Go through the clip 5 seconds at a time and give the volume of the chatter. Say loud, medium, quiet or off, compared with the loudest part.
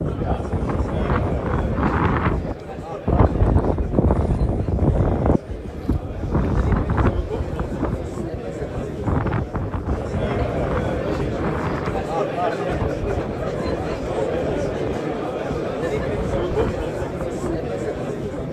medium, medium, loud, loud.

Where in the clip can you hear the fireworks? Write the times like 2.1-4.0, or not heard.
not heard.